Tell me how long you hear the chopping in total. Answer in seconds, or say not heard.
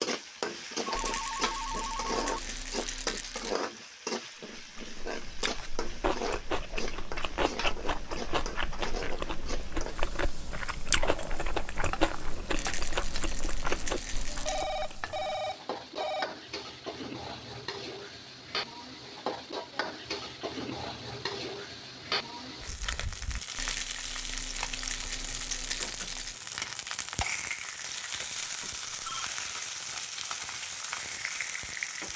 not heard.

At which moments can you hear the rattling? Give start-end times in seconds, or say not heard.
0.9-3.6, 12.6-14.7, 23.6-26.4.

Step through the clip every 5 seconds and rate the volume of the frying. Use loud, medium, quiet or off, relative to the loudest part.
loud, loud, medium, loud, loud, loud, loud.